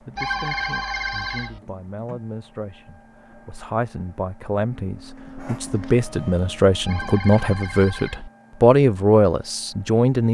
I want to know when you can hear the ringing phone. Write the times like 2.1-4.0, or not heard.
0.1-1.6, 6.8-8.3.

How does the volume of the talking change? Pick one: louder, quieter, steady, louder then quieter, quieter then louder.
louder.